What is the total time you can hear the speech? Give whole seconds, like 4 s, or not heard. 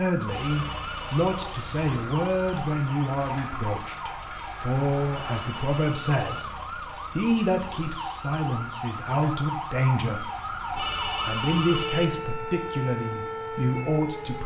13 s.